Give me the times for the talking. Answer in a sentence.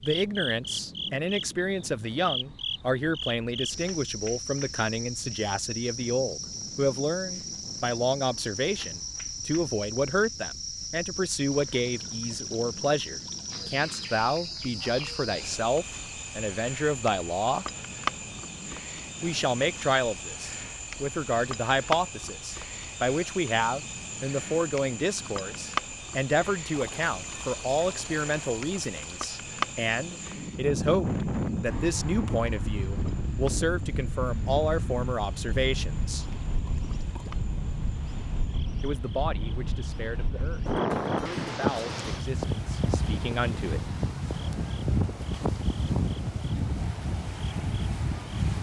You can hear the talking from 0.0 to 17.6 s, from 19.2 to 36.2 s and from 38.8 to 43.9 s.